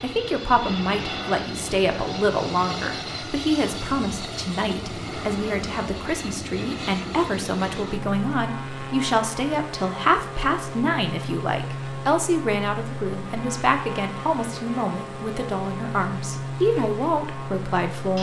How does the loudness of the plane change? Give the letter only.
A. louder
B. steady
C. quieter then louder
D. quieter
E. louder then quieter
B.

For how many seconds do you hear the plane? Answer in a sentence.
You can hear the plane for 18 seconds altogether.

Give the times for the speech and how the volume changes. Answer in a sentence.
You can hear the speech from 0.0 to 18.1 s, at a steady volume.